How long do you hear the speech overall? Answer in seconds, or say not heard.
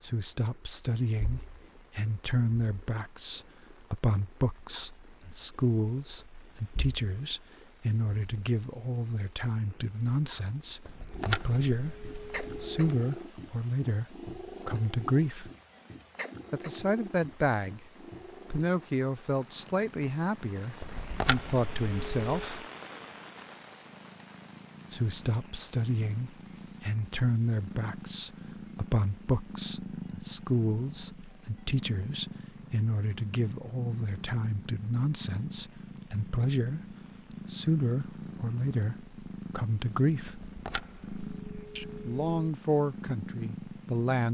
39 s.